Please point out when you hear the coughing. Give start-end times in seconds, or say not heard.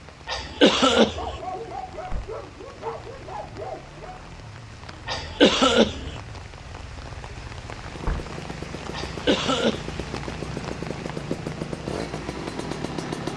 0.2-1.4, 5.0-6.2, 8.9-9.9.